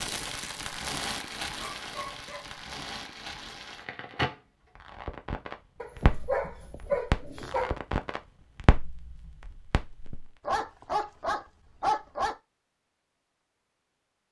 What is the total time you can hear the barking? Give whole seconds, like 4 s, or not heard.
5 s.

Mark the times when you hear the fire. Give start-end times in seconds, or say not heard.
0.0-10.3.